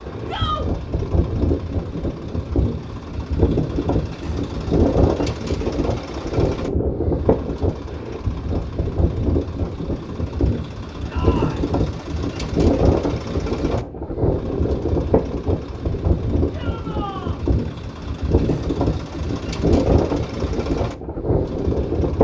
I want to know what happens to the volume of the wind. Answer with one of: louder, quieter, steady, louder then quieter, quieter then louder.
steady.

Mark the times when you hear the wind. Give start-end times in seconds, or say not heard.
0.0-22.1.